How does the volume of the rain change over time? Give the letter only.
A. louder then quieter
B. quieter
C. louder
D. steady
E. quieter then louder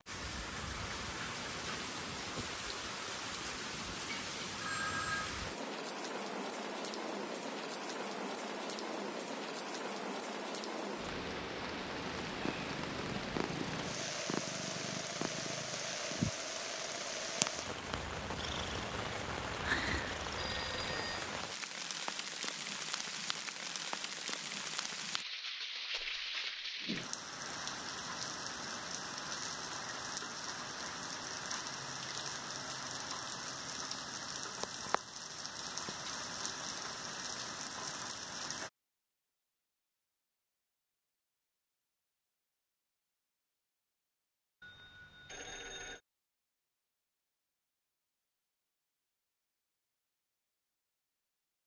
D.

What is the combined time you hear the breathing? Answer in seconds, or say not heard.
not heard.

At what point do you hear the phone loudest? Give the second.
5 s.